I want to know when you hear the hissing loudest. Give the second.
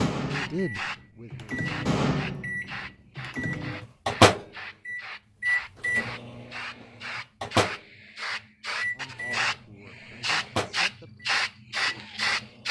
12 s.